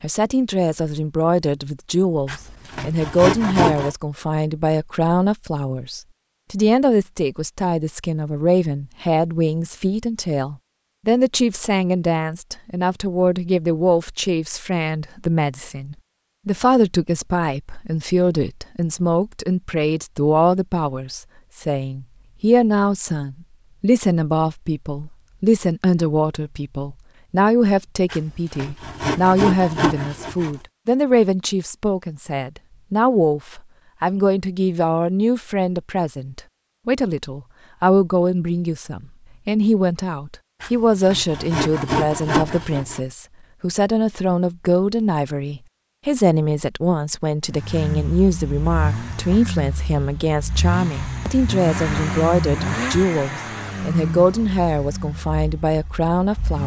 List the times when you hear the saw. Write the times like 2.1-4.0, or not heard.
2.2-4.0, 28.1-30.6, 40.6-43.0.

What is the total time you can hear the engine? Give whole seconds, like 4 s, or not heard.
9 s.